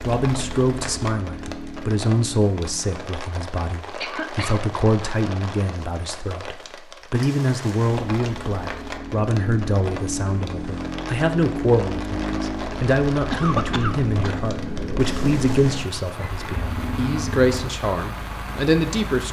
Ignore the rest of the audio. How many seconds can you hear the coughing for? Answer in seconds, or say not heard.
2 s.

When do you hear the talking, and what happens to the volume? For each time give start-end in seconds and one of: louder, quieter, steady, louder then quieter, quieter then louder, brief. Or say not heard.
0.0-19.2 steady.